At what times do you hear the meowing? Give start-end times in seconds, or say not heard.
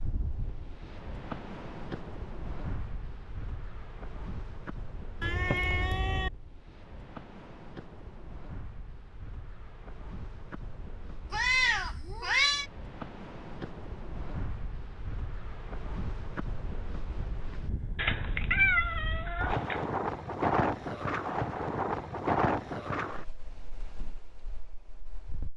5.2-6.3, 11.3-12.7, 17.9-19.9.